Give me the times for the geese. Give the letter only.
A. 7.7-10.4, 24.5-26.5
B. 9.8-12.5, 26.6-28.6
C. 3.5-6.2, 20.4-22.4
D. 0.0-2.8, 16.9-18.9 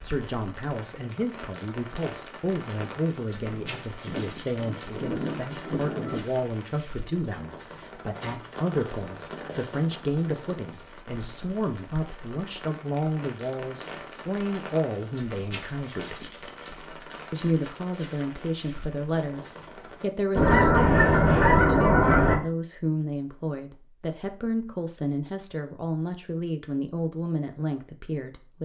C.